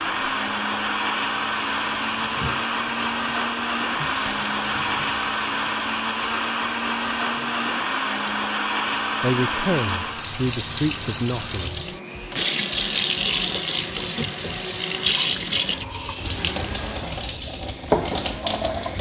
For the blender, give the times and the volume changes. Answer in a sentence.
The blender can be heard from 0.0 to 18.9 s, getting quieter.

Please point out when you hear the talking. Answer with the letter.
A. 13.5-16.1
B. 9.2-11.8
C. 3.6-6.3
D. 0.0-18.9
B.